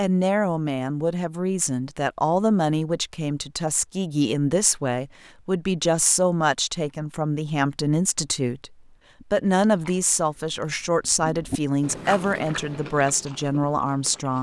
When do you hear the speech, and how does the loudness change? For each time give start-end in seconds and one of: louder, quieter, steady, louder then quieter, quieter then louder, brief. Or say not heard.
0.0-14.3 steady.